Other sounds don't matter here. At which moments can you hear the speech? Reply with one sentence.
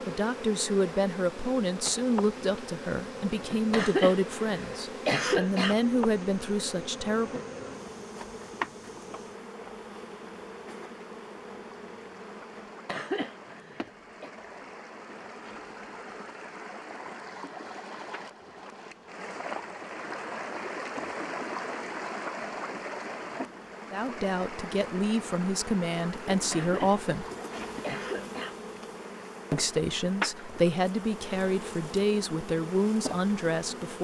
The speech can be heard from 0.1 to 7.4 s, from 23.9 to 27.2 s and from 29.5 to 33.9 s.